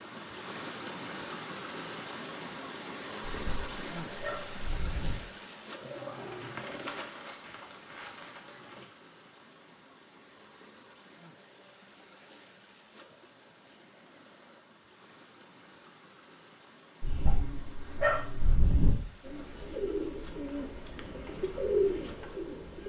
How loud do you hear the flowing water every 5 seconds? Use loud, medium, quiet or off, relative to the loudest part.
loud, medium, quiet, quiet, quiet.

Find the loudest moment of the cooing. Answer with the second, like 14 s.
22 s.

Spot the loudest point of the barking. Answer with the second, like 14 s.
18 s.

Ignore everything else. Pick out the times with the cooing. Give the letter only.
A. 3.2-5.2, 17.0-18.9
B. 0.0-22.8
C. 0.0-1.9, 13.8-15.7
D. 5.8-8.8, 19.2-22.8
D.